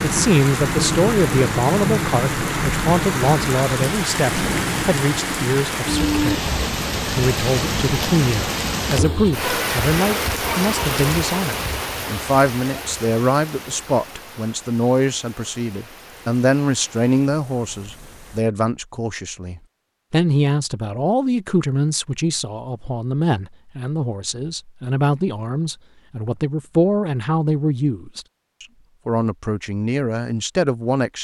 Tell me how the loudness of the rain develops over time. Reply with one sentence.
The volume of the rain goes down.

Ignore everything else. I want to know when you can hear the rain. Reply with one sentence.
You can hear the rain from 0.0 to 18.4 s.